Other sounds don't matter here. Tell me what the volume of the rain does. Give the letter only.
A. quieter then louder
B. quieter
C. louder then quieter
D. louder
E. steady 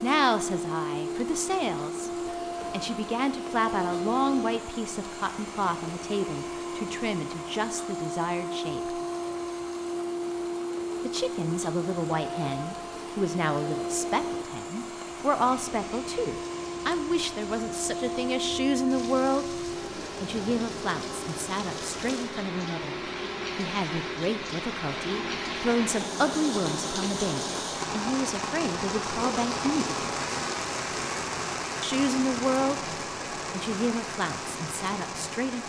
D.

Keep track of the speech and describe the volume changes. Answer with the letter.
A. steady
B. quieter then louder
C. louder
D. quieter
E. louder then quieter
A.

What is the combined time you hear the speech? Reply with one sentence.
You can hear the speech for 32 seconds altogether.